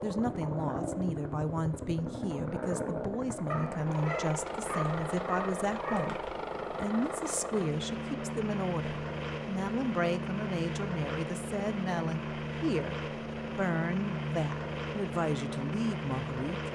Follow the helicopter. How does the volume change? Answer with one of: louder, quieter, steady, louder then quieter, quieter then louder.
steady.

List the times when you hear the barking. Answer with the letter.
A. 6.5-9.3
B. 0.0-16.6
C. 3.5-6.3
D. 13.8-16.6
C.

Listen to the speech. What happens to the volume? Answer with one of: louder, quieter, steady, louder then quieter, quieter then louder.
steady.